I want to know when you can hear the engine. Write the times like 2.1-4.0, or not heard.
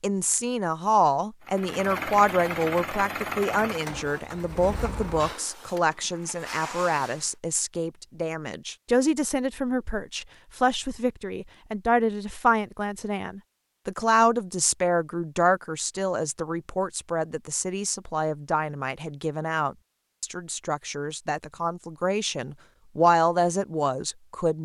1.4-7.3.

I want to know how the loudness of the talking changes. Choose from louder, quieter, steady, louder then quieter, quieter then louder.
steady.